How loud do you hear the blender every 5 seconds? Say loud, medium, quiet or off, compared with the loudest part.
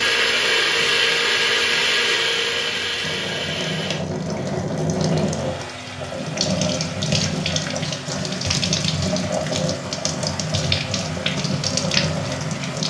loud, quiet, quiet.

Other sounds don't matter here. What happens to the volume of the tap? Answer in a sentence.
The volume of the tap goes up.